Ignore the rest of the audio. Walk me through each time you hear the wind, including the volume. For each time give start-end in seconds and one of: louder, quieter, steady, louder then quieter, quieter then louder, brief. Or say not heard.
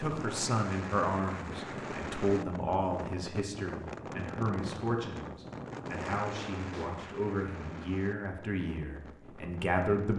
0.0-10.1 quieter.